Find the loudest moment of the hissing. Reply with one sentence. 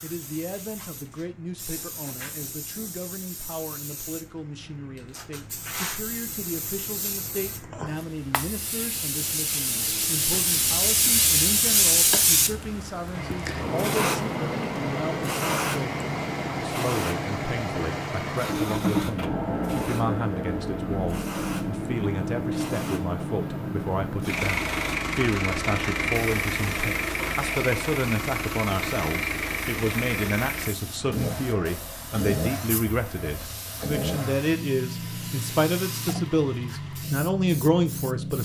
The loudest moment of the hissing is at 12 seconds.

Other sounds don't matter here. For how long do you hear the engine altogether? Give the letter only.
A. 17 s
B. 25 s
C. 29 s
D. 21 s
B.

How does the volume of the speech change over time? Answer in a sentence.
The volume of the speech goes up.